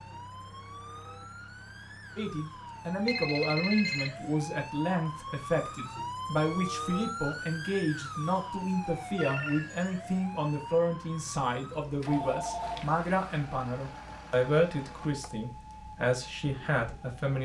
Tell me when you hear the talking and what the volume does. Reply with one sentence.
The talking can be heard from 2.1 to 17.4 s, at a steady volume.